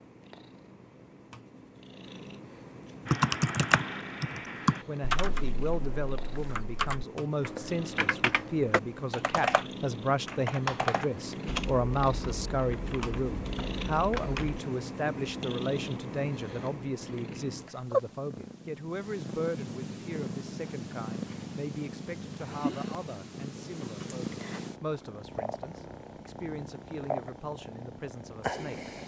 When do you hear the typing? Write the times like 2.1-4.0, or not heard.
3.0-14.6.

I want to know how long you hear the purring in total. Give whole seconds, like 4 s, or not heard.
29 s.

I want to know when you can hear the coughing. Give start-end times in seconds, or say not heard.
not heard.